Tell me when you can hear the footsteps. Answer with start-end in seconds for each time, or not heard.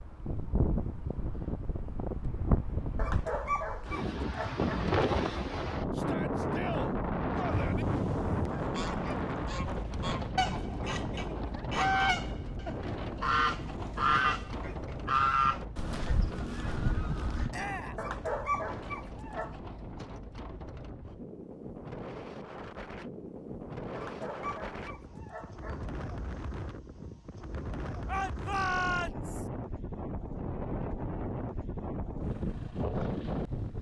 not heard.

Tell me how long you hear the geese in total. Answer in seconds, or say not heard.
10 s.